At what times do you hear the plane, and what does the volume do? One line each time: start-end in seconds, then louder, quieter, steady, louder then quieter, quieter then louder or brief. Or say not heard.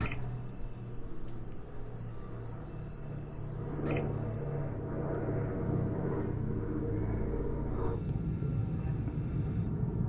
0.0-10.0 louder.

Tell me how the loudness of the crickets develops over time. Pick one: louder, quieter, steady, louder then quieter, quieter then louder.
quieter then louder.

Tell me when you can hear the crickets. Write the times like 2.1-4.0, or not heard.
0.0-10.0.